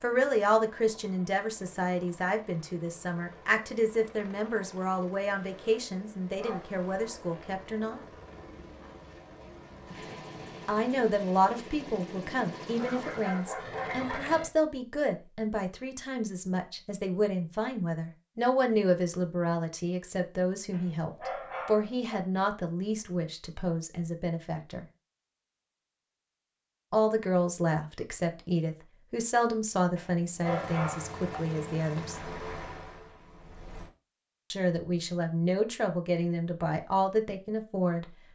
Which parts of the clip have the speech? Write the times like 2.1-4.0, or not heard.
0.0-8.1, 10.7-24.9, 26.9-32.2, 34.5-38.0.